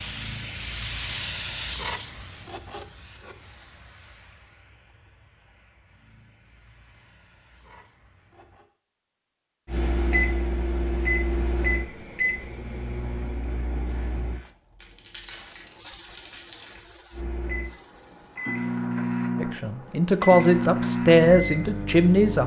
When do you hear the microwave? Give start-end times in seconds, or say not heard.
9.7-14.4, 17.1-22.4.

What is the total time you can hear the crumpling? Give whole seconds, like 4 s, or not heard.
2 s.